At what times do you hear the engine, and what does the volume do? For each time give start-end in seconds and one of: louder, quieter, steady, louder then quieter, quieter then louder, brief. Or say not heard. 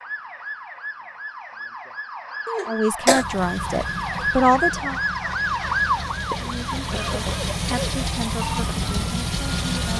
3.0-9.9 louder.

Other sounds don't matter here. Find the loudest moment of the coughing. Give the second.
3 s.